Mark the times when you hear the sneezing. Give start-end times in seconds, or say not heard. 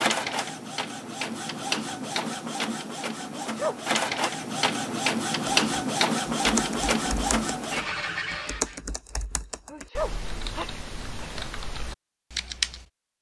3.4-4.5, 9.7-11.4.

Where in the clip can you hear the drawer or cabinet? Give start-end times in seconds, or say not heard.
not heard.